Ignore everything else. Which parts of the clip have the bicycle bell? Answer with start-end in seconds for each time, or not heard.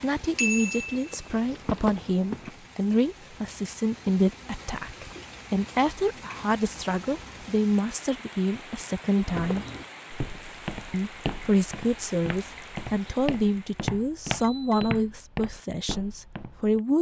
0.3-1.1, 14.4-14.9.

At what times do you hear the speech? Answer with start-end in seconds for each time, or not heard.
0.0-9.7, 10.9-16.9.